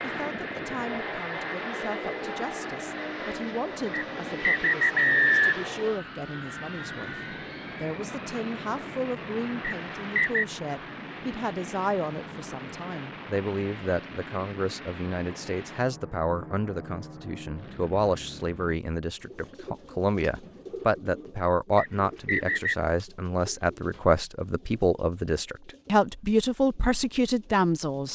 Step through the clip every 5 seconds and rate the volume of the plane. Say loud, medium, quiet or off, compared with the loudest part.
loud, loud, medium, medium, off, off.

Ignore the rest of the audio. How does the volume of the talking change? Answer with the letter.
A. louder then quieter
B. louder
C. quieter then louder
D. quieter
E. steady
B.